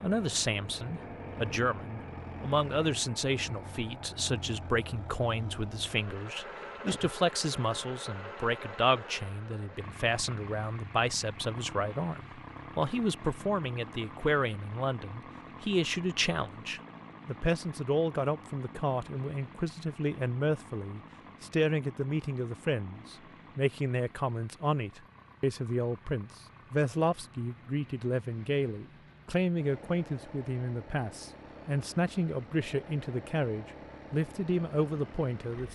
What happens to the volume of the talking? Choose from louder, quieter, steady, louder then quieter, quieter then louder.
steady.